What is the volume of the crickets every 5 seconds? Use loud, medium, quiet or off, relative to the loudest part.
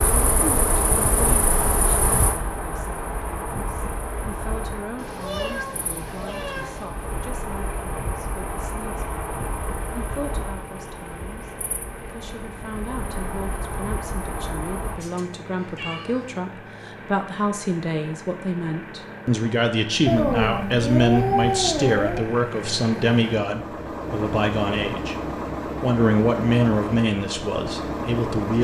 loud, medium, medium, off, off, off.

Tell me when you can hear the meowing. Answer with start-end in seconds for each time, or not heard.
5.0-6.9, 15.0-16.4, 20.1-22.3.